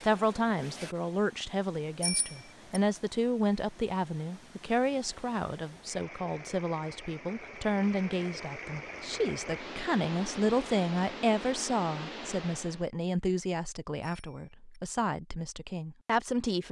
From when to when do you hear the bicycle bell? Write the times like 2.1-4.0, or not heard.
2.0-2.8, 14.0-14.8.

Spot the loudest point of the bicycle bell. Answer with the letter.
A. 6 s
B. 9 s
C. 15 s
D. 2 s
D.